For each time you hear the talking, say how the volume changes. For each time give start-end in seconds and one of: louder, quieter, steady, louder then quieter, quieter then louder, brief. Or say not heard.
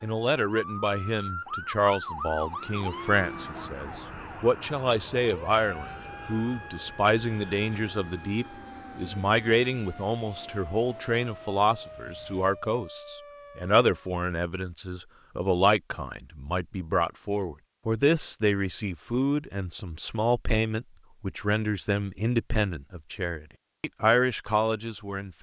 0.0-25.3 steady.